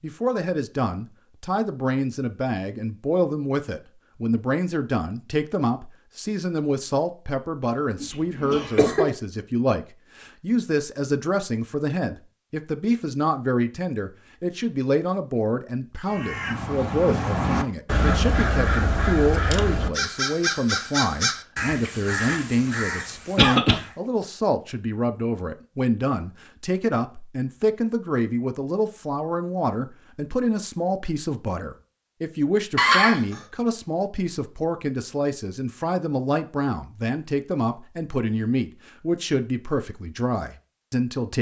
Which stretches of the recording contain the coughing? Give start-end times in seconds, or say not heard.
8.0-9.1, 23.4-23.8, 32.8-33.4.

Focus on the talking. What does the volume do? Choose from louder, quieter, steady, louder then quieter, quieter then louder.
steady.